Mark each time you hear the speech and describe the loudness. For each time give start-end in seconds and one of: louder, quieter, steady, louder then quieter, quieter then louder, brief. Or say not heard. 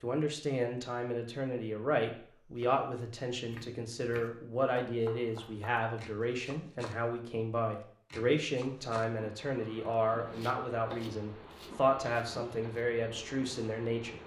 0.0-14.2 steady.